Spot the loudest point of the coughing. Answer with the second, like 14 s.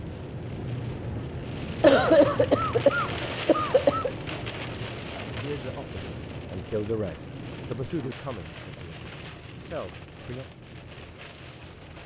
2 s.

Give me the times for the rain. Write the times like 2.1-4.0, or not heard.
0.0-12.0.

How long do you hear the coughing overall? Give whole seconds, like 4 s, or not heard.
2 s.